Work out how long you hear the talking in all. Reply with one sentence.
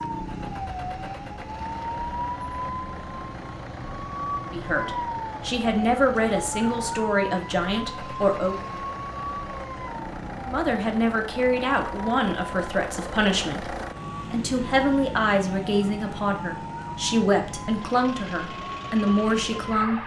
The talking can be heard for 13 seconds in total.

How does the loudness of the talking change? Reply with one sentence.
The volume of the talking stays about the same.